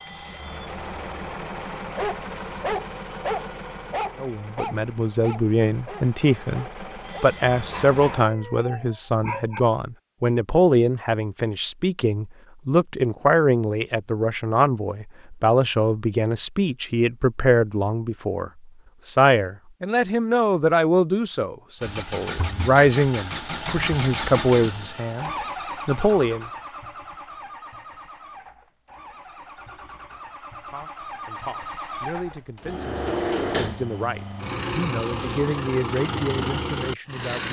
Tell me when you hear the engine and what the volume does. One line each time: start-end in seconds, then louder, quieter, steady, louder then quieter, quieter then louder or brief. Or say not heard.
0.0-8.2 quieter then louder
21.8-37.4 quieter then louder.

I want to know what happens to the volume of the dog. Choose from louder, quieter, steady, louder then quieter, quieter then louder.
quieter.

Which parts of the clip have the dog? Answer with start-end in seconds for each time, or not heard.
1.9-9.6.